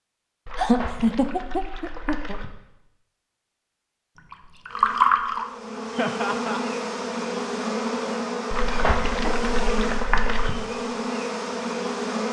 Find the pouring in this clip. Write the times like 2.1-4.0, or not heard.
0.5-2.5, 4.3-5.5, 8.5-10.5.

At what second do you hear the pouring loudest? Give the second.
5 s.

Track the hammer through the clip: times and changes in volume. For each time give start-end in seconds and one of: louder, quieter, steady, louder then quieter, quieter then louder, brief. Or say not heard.
not heard.